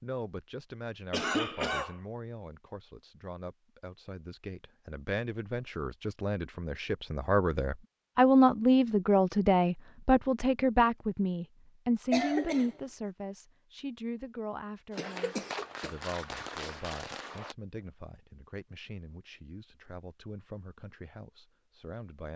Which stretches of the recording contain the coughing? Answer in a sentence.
You can hear the coughing from 1.1 to 2.0 s, from 12.1 to 12.8 s and from 14.9 to 15.9 s.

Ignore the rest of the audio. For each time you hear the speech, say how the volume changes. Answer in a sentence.
You can hear the speech from 0.0 to 22.3 s, getting louder then quieter.